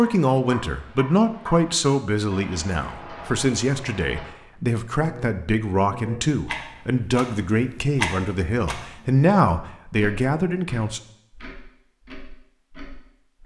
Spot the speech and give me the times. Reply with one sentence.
You can hear the speech from 0.0 to 11.0 s.